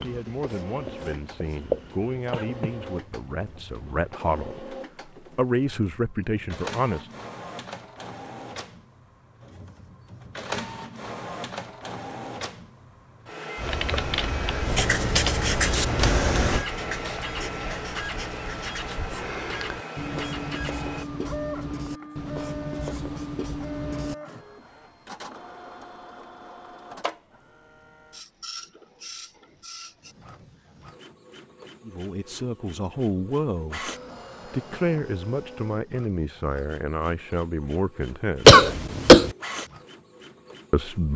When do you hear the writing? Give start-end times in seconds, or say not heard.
0.0-2.3, 14.6-24.1.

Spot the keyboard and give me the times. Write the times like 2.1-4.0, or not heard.
13.6-16.6.